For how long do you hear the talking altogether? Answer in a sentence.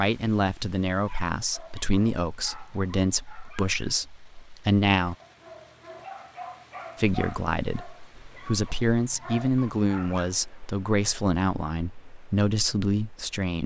You can hear the talking for 12 seconds altogether.